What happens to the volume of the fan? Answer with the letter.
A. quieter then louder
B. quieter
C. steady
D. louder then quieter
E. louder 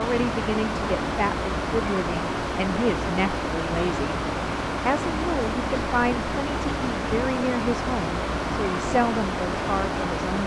C.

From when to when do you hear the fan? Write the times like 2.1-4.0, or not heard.
0.0-10.4.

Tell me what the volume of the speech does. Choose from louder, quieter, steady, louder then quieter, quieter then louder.
steady.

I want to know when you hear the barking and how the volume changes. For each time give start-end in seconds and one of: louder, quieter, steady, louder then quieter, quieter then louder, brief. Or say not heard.
not heard.